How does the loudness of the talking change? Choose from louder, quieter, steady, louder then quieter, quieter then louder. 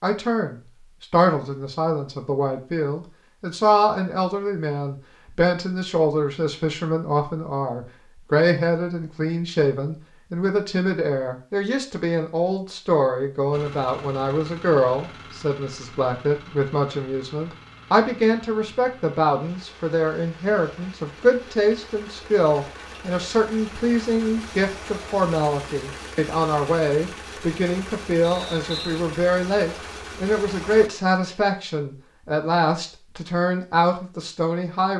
steady.